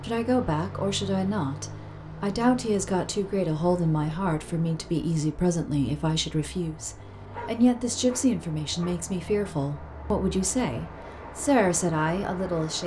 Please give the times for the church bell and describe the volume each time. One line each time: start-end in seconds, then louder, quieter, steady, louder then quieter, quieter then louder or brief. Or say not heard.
not heard.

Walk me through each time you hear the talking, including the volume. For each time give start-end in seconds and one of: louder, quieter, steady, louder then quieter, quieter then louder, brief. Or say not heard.
0.0-12.8 steady.